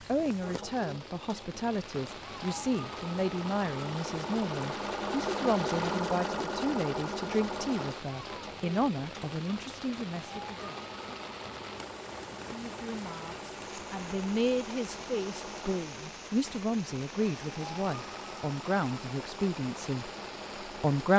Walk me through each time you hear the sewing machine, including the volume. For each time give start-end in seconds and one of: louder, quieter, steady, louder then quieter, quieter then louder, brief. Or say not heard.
0.2-21.1 louder then quieter.